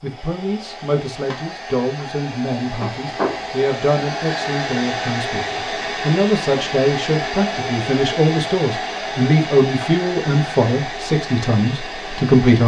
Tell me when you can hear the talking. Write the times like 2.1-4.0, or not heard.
0.0-12.6.